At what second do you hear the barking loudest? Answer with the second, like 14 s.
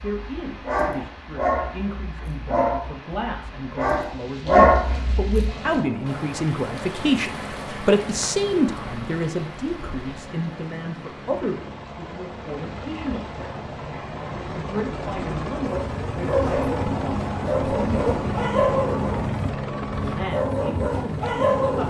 5 s.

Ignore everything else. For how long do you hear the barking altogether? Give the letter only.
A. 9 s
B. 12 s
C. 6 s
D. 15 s
B.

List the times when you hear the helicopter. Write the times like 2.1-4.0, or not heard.
5.4-21.8.